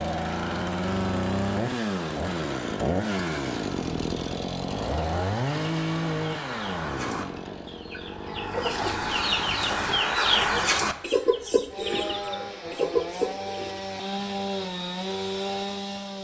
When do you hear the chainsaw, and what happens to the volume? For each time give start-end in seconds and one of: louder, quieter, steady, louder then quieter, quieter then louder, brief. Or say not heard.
0.0-16.1 quieter then louder.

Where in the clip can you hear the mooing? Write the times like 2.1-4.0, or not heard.
11.9-12.9.